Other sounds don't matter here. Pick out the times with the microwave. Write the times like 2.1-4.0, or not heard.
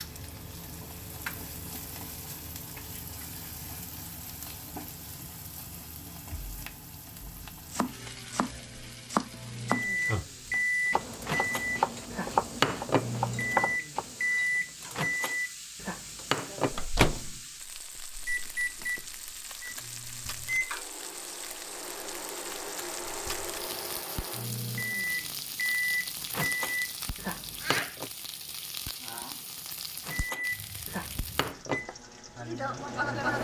9.4-28.1, 30.1-33.3.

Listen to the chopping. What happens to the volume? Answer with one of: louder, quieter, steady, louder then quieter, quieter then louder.
quieter then louder.